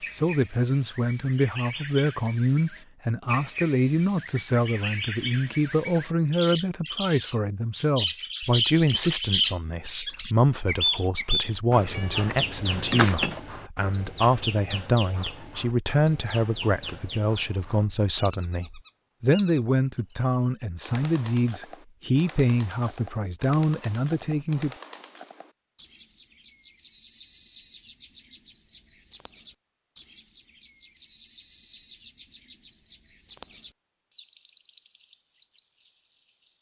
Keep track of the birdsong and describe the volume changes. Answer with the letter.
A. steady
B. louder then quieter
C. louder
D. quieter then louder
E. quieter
B.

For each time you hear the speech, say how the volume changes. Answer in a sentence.
The speech can be heard from 0.1 to 24.7 s, at a steady volume.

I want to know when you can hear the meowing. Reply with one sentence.
The meowing can be heard from 11.9 to 13.4 s.